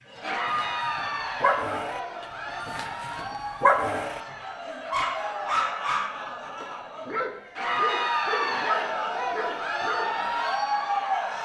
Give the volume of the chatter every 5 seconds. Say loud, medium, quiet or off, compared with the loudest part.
medium, loud, loud.